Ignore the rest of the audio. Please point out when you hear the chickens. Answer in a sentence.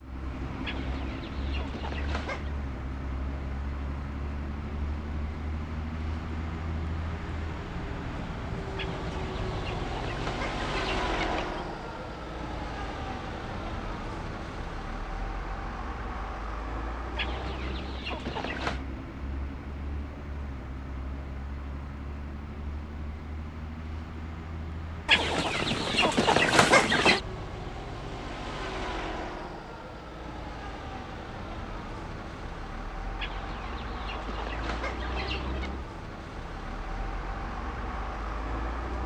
You can hear the chickens from 0.6 to 2.5 s, from 8.8 to 11.7 s, from 17.1 to 18.9 s, from 25.1 to 27.2 s and from 33.1 to 35.8 s.